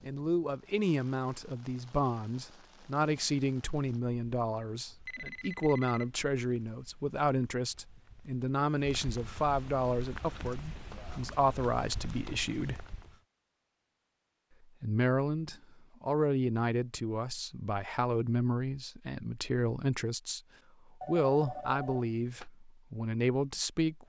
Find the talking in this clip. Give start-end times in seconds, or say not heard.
0.0-12.8, 14.8-20.4, 21.1-24.0.